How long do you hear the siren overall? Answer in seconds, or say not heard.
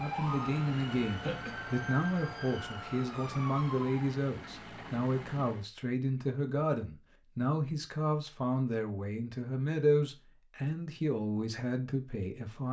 4 s.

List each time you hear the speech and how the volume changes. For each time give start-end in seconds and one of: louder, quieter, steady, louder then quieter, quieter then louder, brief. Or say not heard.
0.0-12.6 steady.